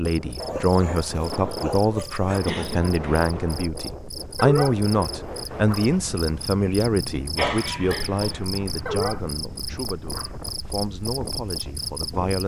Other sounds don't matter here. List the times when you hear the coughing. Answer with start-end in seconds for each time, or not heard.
2.2-3.3, 7.3-8.4.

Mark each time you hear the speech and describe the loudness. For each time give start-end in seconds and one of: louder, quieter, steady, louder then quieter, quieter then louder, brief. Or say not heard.
0.0-12.4 quieter.